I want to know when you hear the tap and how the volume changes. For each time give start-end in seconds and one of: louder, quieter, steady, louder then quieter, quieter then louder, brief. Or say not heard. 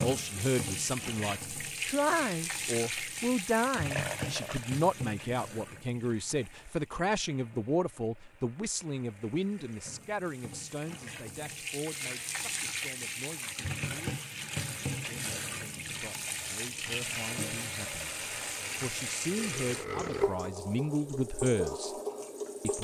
0.0-22.7 quieter then louder.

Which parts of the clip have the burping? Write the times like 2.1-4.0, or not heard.
3.9-4.7, 19.4-20.5.